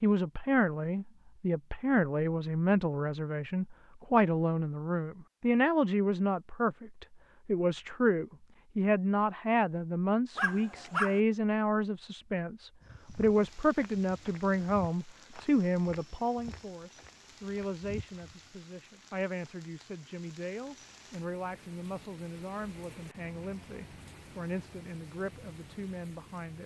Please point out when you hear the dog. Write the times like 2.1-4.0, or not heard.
10.3-11.2.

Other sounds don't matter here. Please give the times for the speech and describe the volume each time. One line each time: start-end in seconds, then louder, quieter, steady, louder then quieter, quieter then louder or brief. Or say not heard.
0.0-26.6 quieter.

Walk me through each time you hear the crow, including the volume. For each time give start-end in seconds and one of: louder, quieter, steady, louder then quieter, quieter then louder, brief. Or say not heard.
not heard.